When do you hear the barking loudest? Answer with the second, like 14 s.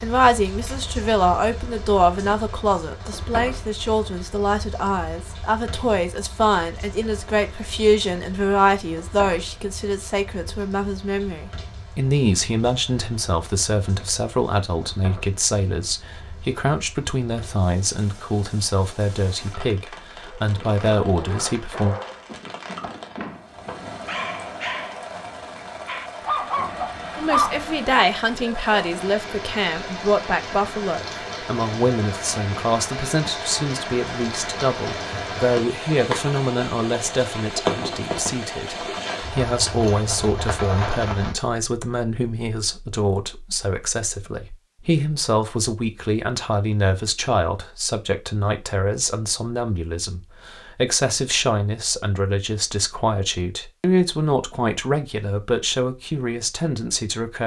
27 s.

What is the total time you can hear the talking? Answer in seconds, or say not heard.
52 s.